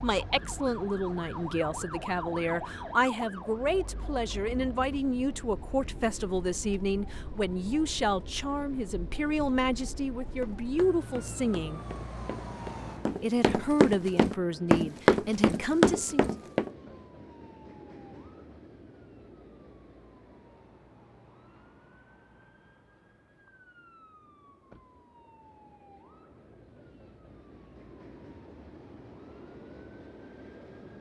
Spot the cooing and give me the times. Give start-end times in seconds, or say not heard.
not heard.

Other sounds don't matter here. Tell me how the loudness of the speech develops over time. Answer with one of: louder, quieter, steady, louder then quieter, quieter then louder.
steady.